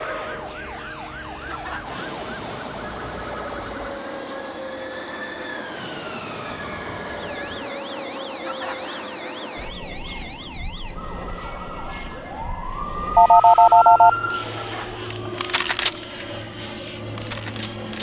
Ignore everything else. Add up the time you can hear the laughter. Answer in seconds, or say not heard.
2 s.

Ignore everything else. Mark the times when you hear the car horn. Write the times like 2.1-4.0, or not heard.
not heard.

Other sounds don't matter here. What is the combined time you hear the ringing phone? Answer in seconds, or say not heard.
3 s.